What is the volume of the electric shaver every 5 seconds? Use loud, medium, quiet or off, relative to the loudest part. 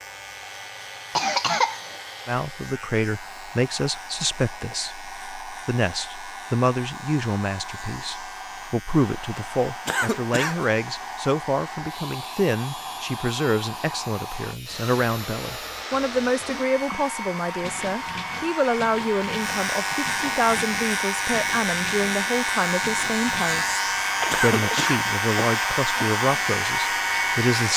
quiet, quiet, quiet, medium, loud, loud.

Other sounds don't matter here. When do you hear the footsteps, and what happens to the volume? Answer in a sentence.
You can't hear the footsteps here.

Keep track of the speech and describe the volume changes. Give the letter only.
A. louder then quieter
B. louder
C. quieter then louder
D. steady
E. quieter
D.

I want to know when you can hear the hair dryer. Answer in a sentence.
The hair dryer can be heard from 0.0 to 27.7 s.